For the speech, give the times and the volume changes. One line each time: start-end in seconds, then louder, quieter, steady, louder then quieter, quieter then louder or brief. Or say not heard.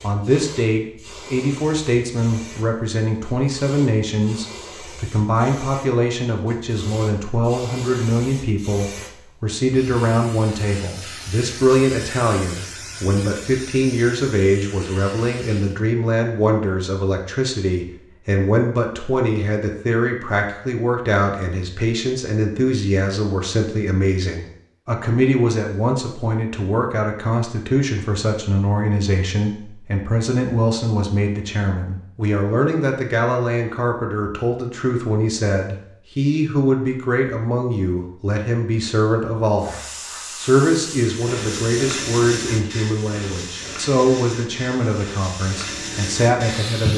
0.0-39.8 steady
40.4-46.9 steady.